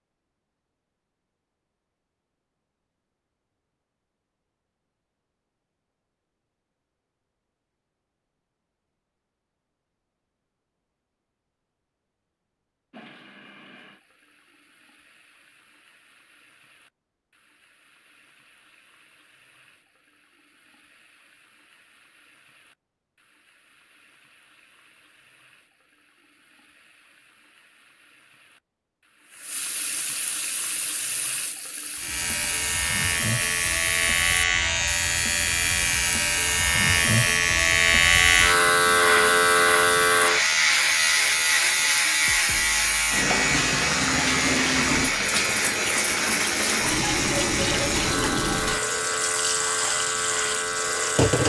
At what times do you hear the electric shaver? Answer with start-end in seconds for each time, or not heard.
31.9-51.4.